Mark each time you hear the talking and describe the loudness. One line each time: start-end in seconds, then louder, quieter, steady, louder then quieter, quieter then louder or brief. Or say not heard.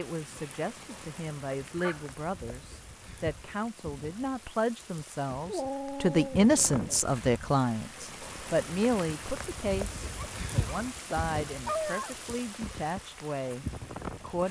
0.0-14.4 louder then quieter.